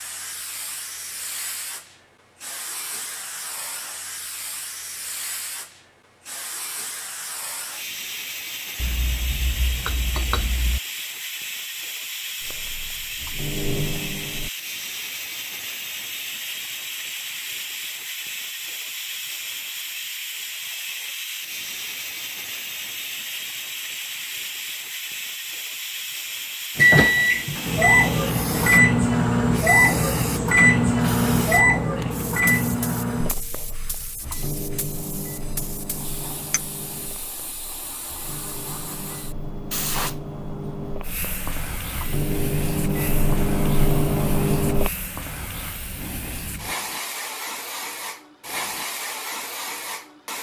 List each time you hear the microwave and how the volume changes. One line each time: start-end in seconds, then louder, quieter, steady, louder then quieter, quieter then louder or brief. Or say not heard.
12.4-14.5 brief
26.8-44.9 quieter then louder.